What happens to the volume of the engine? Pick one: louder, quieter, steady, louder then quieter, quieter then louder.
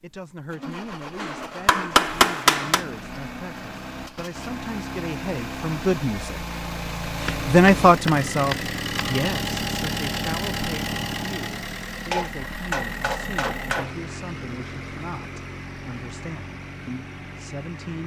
louder then quieter.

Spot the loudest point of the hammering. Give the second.
2 s.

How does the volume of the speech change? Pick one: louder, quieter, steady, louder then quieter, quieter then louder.
louder then quieter.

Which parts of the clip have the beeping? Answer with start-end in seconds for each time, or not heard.
not heard.